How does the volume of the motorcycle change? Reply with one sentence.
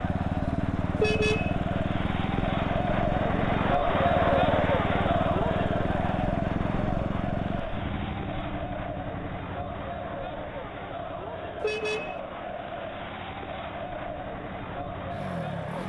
The loudness of the motorcycle goes down.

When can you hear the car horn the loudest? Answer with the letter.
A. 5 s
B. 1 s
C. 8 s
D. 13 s
B.